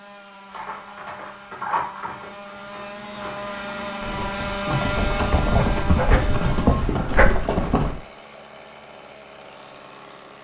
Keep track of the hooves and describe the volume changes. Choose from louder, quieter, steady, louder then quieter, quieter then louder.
quieter then louder.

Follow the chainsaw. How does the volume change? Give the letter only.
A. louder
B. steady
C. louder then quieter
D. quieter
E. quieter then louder
C.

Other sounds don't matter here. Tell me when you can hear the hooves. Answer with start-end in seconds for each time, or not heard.
0.5-8.0.